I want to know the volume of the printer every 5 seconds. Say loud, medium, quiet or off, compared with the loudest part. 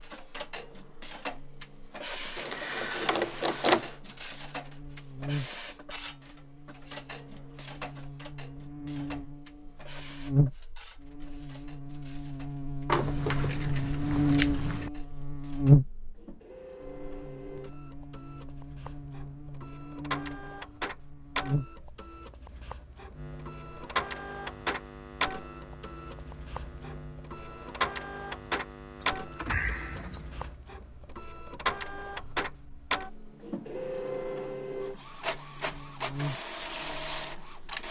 loud, medium, quiet, quiet, loud, loud, loud, loud.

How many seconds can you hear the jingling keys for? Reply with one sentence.
The jingling keys can be heard for 5 seconds in total.